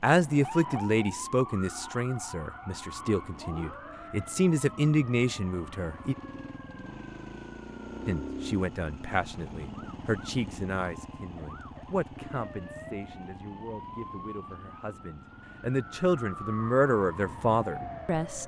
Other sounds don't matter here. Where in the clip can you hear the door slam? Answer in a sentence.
You can't hear the door slam here.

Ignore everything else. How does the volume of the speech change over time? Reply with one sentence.
The loudness of the speech goes down, then up.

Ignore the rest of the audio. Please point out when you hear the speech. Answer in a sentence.
The speech can be heard from 0.0 to 6.2 s and from 8.1 to 18.4 s.